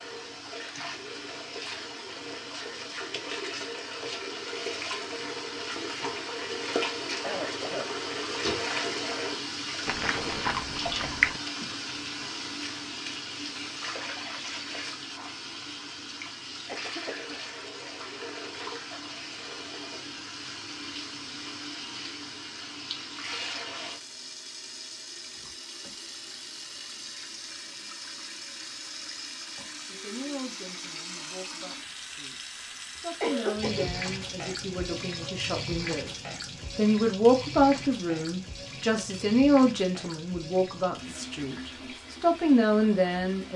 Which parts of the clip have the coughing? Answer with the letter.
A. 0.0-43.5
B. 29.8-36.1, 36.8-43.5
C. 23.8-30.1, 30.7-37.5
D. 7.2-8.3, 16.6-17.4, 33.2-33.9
D.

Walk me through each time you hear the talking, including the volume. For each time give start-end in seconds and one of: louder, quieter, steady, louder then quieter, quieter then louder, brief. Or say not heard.
29.8-36.1 quieter then louder
36.8-43.5 quieter then louder.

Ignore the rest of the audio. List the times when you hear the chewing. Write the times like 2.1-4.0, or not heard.
9.8-11.4.